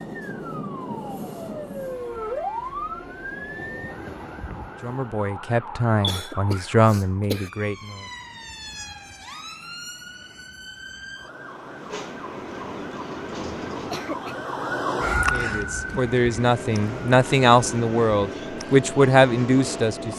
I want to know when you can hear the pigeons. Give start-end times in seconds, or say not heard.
not heard.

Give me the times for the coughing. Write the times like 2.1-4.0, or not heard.
6.0-7.5, 13.7-14.4.